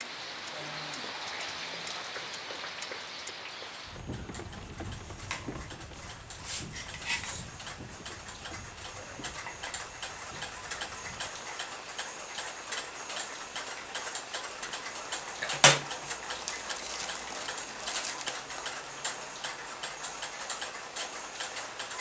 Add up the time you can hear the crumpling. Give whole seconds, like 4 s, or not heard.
2 s.